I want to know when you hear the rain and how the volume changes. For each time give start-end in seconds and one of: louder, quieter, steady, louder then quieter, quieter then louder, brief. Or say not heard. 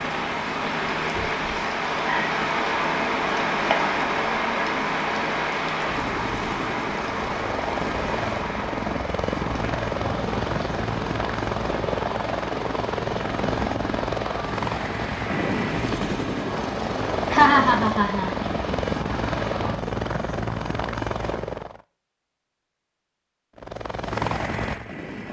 0.0-19.8 quieter.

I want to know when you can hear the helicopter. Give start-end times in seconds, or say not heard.
0.0-21.9, 23.6-25.2.